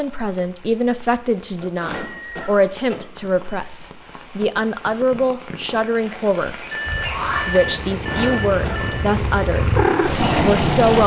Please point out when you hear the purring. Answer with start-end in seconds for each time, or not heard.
6.8-11.0.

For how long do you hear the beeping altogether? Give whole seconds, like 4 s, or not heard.
3 s.